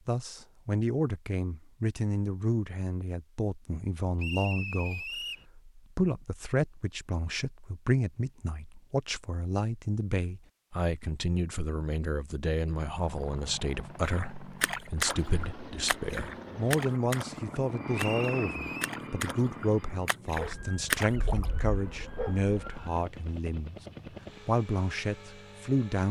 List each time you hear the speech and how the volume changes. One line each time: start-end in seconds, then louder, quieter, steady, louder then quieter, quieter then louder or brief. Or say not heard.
0.1-23.8 steady
24.4-26.0 brief.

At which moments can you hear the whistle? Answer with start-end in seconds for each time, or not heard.
4.2-5.5, 17.9-18.9.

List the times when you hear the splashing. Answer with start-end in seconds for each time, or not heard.
14.0-21.5.